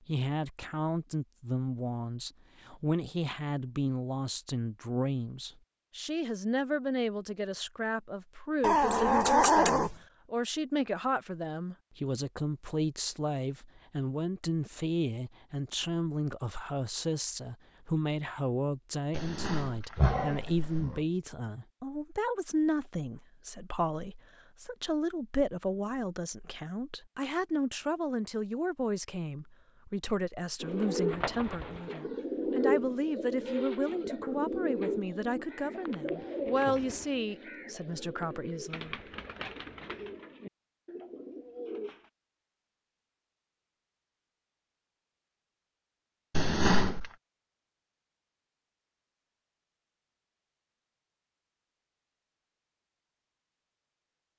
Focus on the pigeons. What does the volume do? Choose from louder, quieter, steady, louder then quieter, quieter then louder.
quieter.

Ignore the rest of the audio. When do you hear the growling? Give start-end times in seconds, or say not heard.
8.6-9.9, 19.1-21.0, 46.3-47.1.